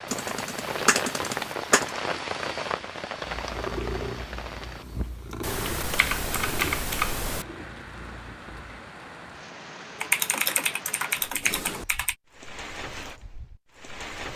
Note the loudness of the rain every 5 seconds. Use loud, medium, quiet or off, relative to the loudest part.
loud, medium, medium.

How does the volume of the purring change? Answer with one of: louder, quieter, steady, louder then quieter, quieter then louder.
quieter.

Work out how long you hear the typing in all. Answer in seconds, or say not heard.
6 s.